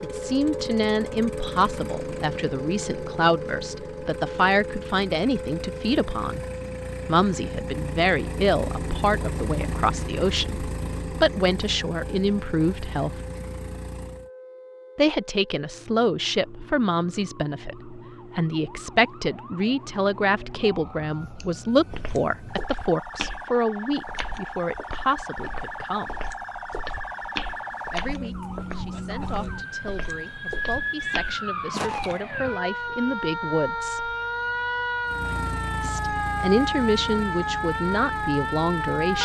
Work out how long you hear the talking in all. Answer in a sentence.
The talking can be heard for 33 seconds in total.